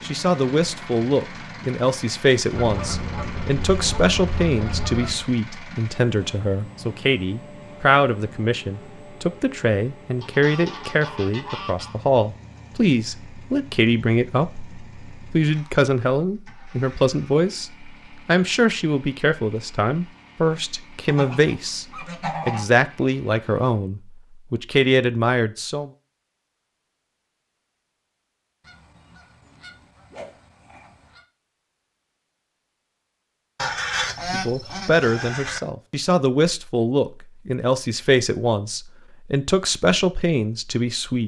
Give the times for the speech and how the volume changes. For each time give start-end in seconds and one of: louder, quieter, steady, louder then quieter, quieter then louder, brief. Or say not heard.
0.0-25.9 steady
34.3-41.2 steady.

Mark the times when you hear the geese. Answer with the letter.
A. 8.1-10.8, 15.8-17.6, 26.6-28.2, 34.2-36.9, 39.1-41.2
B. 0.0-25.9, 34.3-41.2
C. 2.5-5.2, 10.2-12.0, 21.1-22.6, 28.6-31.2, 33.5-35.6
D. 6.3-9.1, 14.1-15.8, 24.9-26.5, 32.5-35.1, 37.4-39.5
C.